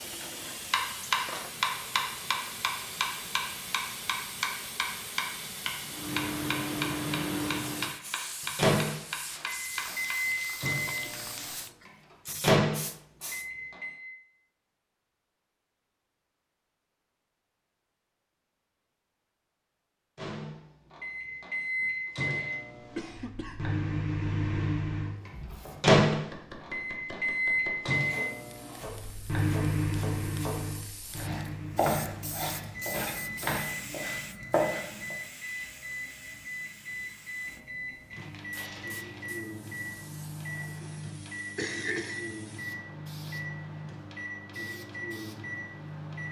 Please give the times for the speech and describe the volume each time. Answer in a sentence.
The speech can't be heard in this clip.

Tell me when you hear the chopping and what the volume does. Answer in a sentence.
You can hear the chopping from 0.7 to 10.2 s, getting quieter; and from 25.1 to 35.1 s, getting louder.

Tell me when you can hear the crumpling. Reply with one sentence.
You can hear the crumpling from 38.1 to 39.3 s.